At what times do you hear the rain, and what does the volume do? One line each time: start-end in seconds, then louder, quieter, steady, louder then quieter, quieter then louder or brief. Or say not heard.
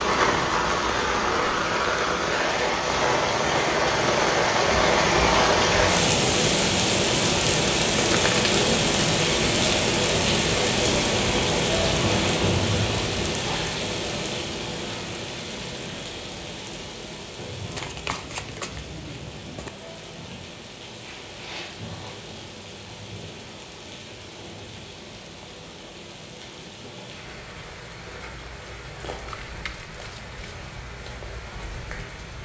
0.0-32.3 quieter.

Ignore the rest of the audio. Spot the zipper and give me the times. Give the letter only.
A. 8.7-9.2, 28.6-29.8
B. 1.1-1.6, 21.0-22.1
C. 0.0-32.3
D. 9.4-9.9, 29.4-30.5
B.